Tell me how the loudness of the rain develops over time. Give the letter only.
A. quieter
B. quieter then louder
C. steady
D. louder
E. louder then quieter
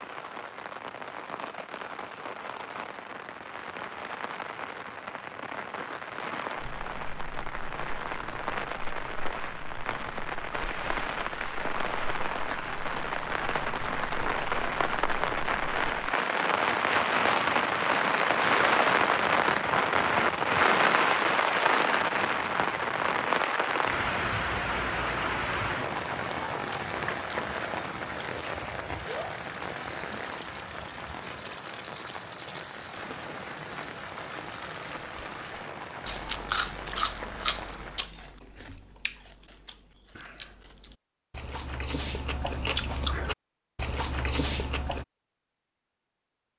E.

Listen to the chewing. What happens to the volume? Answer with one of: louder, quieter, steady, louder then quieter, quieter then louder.
quieter then louder.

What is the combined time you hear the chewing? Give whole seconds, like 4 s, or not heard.
9 s.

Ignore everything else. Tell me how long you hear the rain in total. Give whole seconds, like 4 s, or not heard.
38 s.